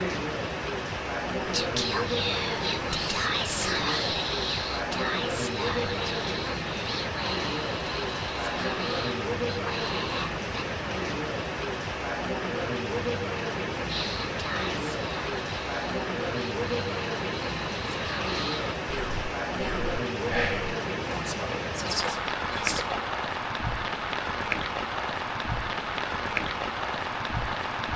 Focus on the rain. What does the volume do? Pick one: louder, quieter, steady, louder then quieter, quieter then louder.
steady.